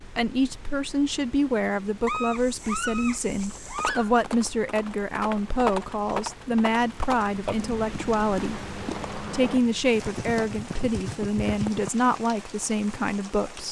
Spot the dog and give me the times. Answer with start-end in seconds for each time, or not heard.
2.0-4.1.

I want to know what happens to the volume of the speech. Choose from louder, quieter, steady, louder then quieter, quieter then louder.
steady.